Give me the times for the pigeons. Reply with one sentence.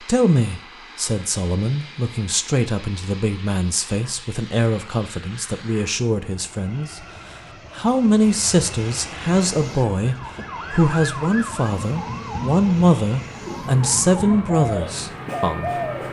The pigeons can be heard from 13.4 to 16.0 s.